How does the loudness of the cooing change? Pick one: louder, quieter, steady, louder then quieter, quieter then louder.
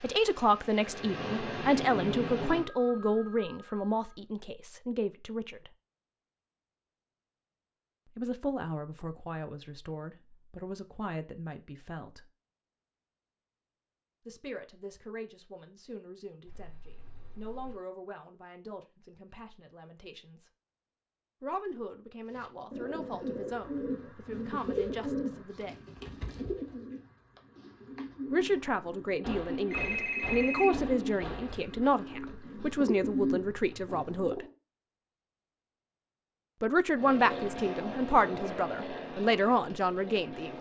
quieter then louder.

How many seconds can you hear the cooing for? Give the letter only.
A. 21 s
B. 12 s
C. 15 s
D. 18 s
B.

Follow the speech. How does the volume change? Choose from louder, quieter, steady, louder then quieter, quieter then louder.
quieter then louder.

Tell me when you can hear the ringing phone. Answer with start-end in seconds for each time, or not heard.
2.5-4.2, 16.4-17.8, 29.2-31.6.